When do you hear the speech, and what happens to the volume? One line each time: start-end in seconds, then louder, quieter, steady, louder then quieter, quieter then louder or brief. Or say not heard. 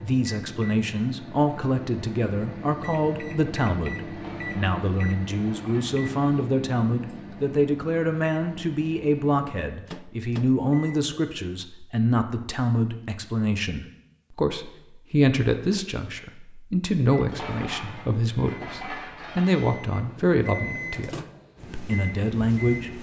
0.0-22.9 steady.